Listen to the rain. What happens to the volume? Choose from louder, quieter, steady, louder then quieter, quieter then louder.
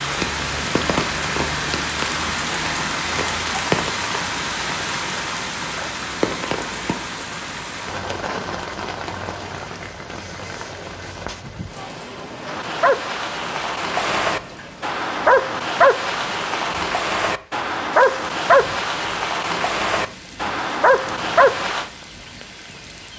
quieter.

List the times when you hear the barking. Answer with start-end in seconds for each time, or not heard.
12.4-21.9.